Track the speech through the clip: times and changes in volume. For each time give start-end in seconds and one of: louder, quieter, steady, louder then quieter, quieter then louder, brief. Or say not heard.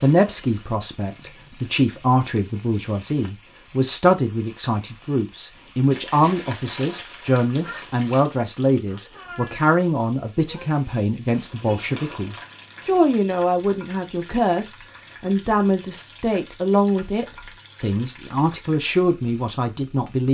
0.0-20.2 steady.